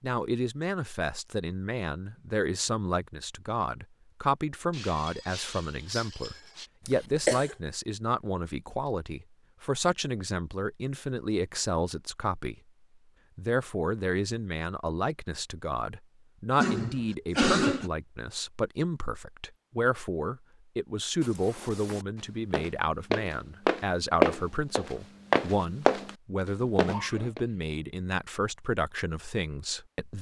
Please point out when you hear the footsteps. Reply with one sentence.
The footsteps can be heard from 21.2 to 26.1 s and from 26.8 to 27.4 s.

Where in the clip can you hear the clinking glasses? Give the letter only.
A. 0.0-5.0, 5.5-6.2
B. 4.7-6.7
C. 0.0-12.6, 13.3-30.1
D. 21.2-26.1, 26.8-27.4
B.